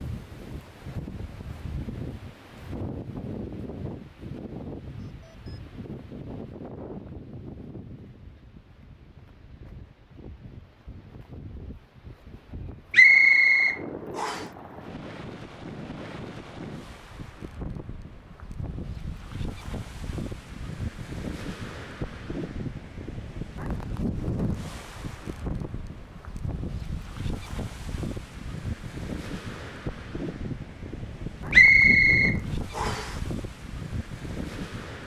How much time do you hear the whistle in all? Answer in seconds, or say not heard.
3 s.